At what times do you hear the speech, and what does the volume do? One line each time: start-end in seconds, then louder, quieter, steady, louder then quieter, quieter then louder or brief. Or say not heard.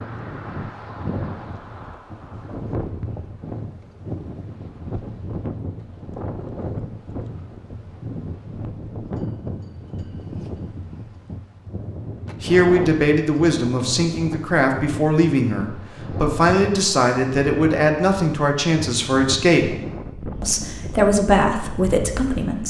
12.4-19.8 steady
20.4-22.6 brief.